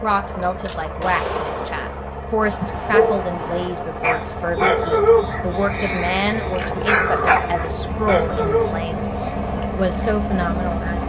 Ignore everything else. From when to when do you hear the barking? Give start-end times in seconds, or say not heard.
2.4-8.7.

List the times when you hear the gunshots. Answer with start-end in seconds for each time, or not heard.
0.4-2.1.